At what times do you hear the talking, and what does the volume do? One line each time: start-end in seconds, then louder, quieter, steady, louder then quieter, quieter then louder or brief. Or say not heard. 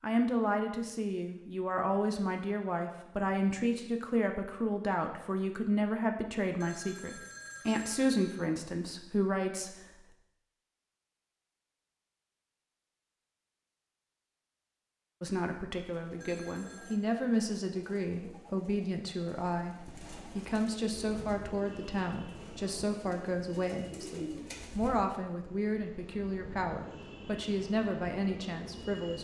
0.0-9.8 steady
15.2-29.1 steady.